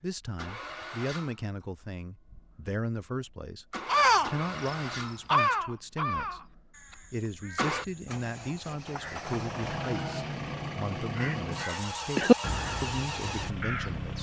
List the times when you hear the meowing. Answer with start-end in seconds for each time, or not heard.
not heard.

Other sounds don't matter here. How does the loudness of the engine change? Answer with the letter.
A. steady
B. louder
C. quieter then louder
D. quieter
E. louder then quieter
B.